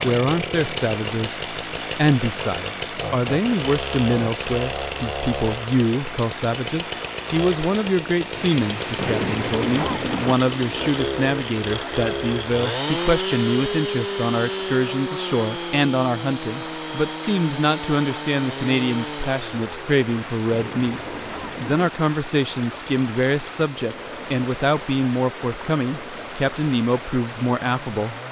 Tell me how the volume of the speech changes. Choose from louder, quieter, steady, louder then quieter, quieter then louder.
steady.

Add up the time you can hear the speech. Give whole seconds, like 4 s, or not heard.
28 s.